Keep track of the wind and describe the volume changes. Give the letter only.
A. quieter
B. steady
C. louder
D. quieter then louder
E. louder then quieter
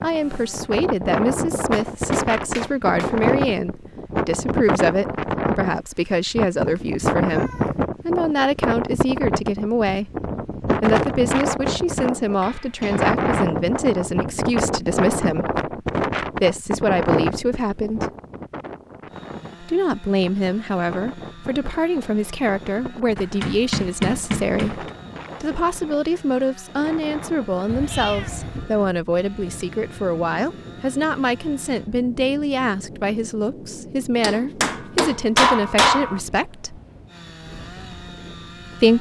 A.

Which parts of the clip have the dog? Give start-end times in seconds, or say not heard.
not heard.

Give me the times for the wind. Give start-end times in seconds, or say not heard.
0.0-38.9.